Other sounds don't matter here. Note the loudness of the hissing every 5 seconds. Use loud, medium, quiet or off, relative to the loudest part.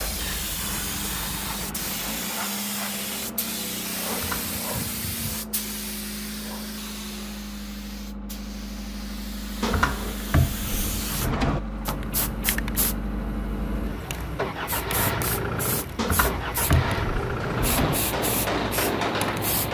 loud, medium, loud, loud.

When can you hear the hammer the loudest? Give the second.
19 s.